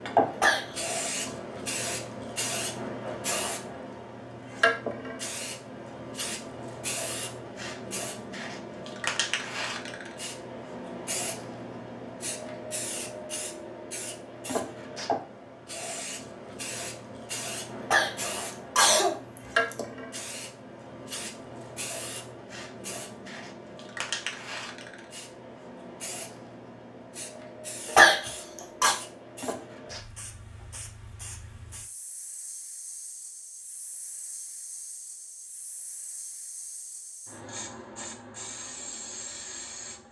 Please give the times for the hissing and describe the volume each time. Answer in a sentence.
The hissing can be heard from 0.0 to 40.0 s, getting quieter.